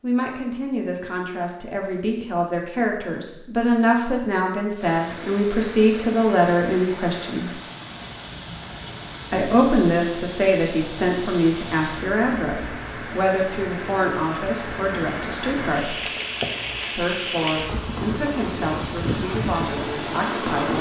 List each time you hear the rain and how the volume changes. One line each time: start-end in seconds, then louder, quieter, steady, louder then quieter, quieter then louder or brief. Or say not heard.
4.8-20.7 louder.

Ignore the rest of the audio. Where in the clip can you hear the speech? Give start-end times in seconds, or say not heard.
0.0-7.5, 9.3-16.0, 16.9-20.7.